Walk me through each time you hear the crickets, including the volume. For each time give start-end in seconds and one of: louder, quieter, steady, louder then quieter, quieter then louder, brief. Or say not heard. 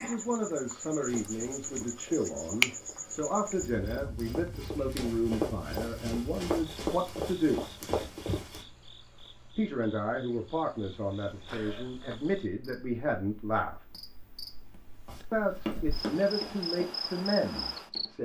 0.0-18.1 quieter then louder.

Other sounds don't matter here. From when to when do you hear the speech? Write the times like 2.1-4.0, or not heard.
0.0-7.7, 9.6-13.8, 15.3-18.1.